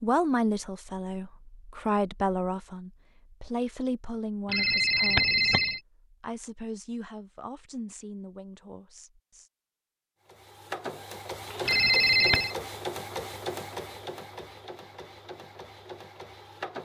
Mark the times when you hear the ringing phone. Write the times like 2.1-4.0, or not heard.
4.5-5.8, 11.7-12.6.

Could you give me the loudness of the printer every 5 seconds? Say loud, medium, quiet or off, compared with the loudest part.
off, off, loud, medium.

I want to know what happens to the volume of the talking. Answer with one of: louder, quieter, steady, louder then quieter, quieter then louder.
quieter.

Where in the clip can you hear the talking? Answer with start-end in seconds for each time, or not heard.
0.0-9.5.